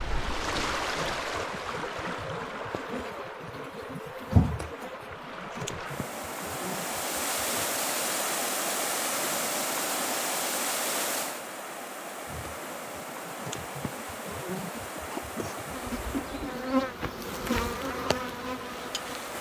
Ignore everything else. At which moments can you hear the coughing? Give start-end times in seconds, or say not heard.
15.1-16.6.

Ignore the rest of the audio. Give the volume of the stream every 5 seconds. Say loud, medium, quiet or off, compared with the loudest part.
loud, loud, loud, medium.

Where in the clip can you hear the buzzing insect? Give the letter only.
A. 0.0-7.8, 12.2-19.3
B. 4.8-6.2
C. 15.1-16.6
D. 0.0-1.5
A.